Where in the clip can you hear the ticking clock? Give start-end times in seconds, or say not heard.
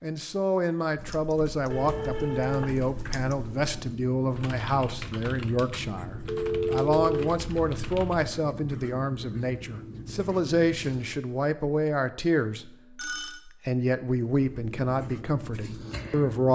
not heard.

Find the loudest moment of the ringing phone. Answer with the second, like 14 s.
7 s.